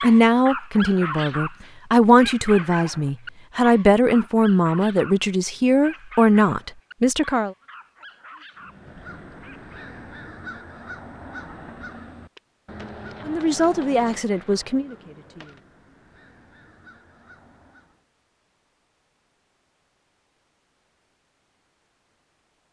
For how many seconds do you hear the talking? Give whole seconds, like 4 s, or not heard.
10 s.